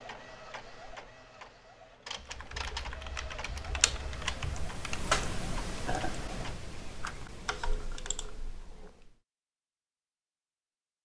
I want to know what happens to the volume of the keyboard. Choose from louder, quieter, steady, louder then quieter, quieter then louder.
louder then quieter.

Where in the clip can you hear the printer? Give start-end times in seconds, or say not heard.
0.0-6.5.